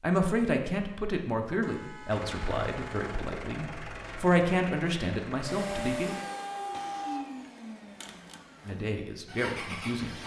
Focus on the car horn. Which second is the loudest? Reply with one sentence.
The volume of the car horn peaks at 7 seconds.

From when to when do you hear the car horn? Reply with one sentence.
The car horn can be heard from 1.6 to 3.2 s and from 5.5 to 7.2 s.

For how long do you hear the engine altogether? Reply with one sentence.
You can hear the engine for 8 seconds altogether.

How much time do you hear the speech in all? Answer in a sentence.
You can hear the speech for 8 seconds altogether.